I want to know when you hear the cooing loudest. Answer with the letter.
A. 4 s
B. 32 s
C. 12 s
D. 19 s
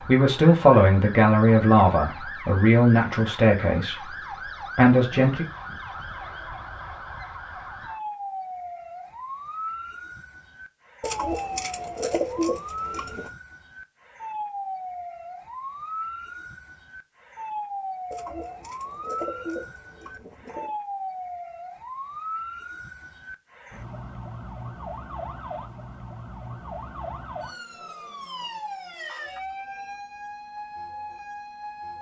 C.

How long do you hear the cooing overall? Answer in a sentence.
You can hear the cooing for 5 seconds altogether.